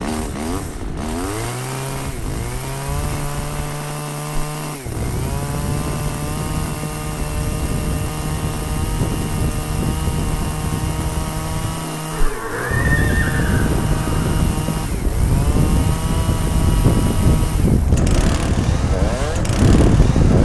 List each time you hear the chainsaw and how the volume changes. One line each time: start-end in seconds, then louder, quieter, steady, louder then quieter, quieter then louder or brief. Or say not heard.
0.0-20.3 steady.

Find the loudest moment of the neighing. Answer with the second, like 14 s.
13 s.